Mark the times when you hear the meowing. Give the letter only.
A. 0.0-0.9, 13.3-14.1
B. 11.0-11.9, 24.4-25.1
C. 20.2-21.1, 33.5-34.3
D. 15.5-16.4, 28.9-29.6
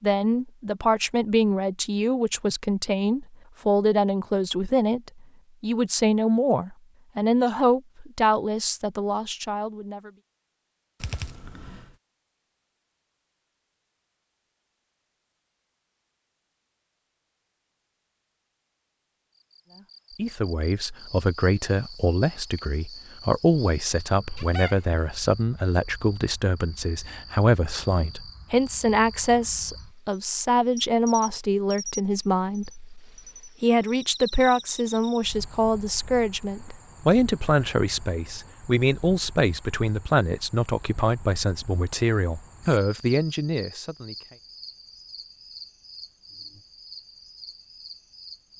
B.